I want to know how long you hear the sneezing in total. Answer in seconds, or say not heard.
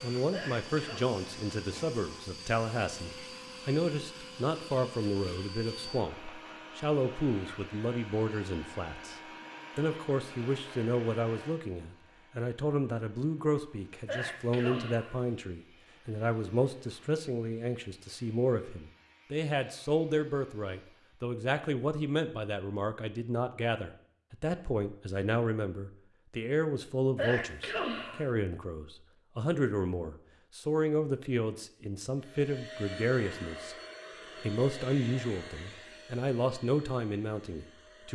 3 s.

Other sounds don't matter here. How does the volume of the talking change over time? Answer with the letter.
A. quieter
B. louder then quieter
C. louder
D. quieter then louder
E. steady
E.